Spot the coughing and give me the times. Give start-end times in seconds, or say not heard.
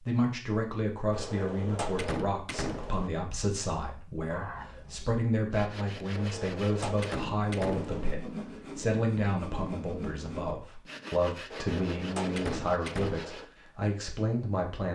4.3-5.2.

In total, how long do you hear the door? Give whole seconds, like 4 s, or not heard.
6 s.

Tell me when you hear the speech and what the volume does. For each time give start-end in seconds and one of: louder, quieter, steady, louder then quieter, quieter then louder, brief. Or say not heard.
0.0-14.9 steady.